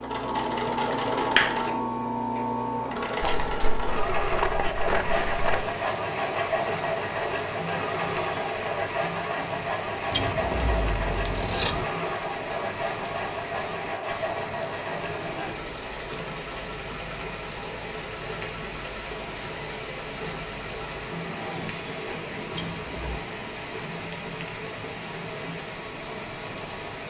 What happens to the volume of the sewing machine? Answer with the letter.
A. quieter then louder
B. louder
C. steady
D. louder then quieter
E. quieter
E.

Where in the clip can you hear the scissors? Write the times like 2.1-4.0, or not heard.
3.2-5.7, 10.1-11.8, 22.5-23.2.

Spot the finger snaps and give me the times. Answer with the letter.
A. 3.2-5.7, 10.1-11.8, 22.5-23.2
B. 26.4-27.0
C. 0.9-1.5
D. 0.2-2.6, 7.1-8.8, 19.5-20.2
C.